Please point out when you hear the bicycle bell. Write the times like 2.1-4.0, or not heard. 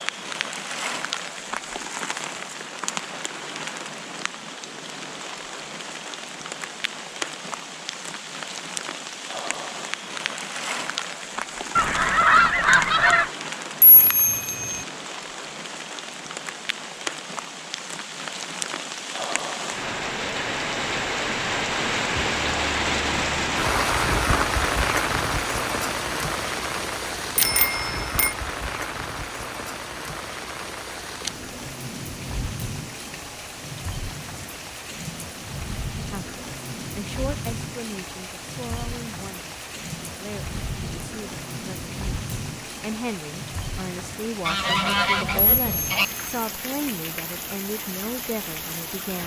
13.8-14.8, 27.4-28.3, 45.6-46.4.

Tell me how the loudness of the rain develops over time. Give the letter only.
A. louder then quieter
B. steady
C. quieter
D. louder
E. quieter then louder
A.